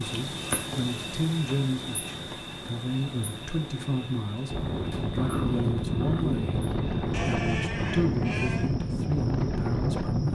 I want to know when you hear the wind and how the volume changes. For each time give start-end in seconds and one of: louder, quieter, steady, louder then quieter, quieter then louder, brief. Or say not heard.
4.5-10.3 steady.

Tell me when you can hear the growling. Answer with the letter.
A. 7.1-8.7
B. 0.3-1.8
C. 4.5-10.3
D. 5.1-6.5
D.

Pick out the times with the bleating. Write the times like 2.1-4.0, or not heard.
7.1-8.7.